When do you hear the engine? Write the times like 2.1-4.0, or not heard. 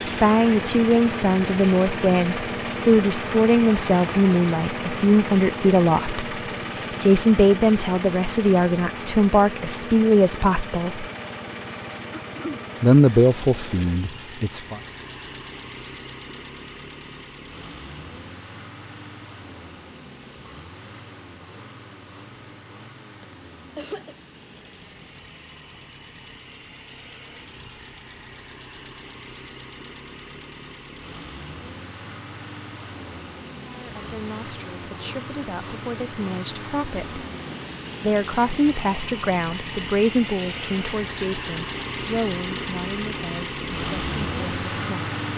0.0-45.3.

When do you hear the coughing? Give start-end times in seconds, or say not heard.
12.1-12.7, 23.2-24.1.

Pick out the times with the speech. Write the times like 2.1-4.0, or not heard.
0.1-6.2, 7.0-11.1, 12.8-14.8, 33.6-37.2, 38.0-45.1.